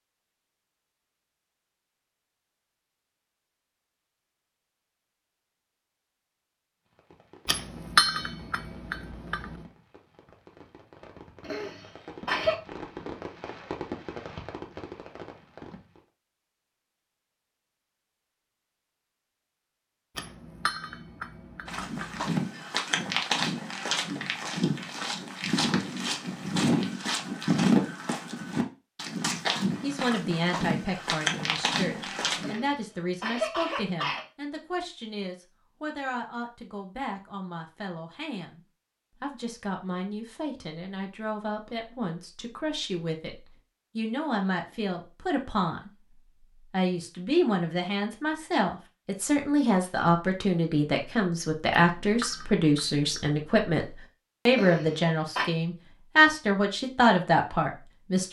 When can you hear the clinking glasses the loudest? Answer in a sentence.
The loudest moment of the clinking glasses is at 8 seconds.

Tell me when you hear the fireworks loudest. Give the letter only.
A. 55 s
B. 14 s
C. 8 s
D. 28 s
B.